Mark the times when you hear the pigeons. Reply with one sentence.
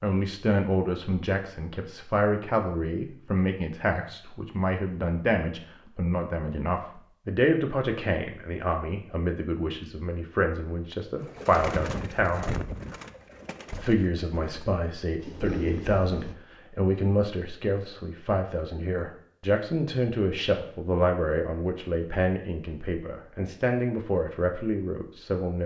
The pigeons can be heard from 11.2 to 16.4 s.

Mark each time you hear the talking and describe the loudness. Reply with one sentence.
The talking can be heard from 0.0 to 12.6 s, at a steady volume; and from 13.8 to 25.6 s, at a steady volume.